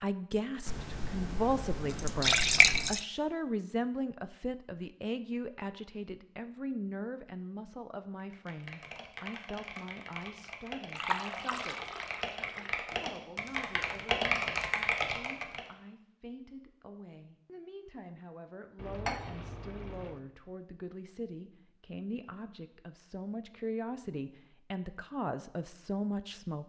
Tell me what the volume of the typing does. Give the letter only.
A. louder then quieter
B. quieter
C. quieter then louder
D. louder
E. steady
D.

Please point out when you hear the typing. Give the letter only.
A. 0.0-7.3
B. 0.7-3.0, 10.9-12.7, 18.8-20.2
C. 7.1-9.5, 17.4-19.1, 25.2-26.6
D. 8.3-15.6
D.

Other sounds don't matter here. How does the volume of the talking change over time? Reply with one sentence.
The loudness of the talking goes down, then up.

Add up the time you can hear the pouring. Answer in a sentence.
The pouring can be heard for 6 seconds in total.